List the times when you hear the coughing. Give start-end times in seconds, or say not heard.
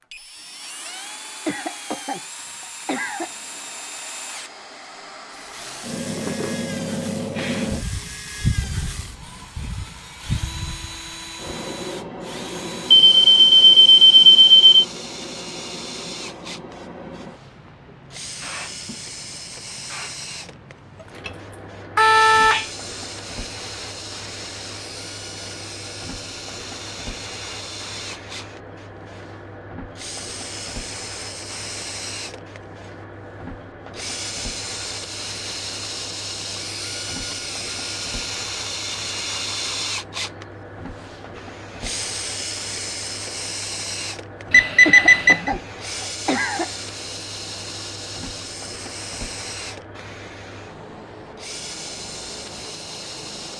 1.4-3.3, 44.9-46.7.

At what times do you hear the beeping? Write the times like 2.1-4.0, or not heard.
12.9-14.8, 21.2-22.7, 44.5-45.5.